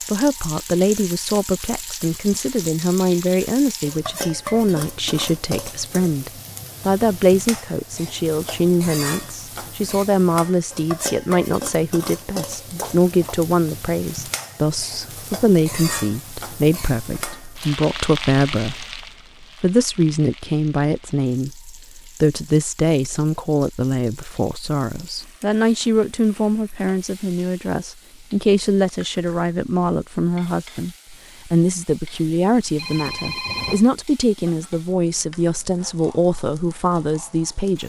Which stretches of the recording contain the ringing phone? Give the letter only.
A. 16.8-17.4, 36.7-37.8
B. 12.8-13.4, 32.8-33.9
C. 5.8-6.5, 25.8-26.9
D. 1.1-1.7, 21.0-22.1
B.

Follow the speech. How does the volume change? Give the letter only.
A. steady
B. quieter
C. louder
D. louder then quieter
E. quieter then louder
A.